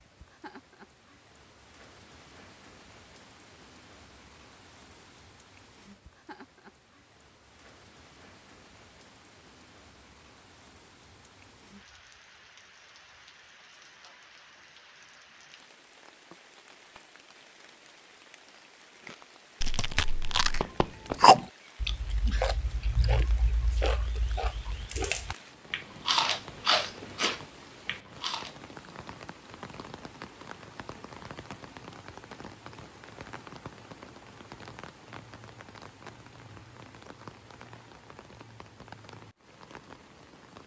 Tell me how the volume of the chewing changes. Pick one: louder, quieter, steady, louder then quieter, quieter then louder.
quieter then louder.